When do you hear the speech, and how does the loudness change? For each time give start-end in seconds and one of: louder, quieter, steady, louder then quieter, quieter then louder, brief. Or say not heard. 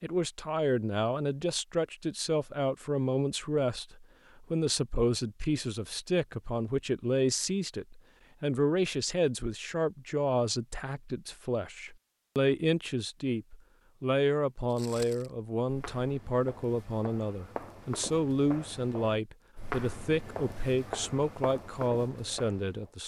0.0-23.0 steady.